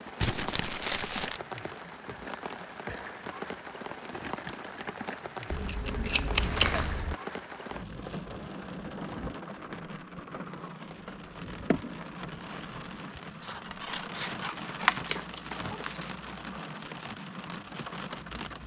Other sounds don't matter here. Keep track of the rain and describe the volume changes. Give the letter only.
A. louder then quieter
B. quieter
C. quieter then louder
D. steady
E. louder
D.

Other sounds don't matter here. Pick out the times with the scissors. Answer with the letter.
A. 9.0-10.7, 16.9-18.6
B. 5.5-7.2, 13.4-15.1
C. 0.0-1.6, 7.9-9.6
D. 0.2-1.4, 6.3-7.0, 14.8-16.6
B.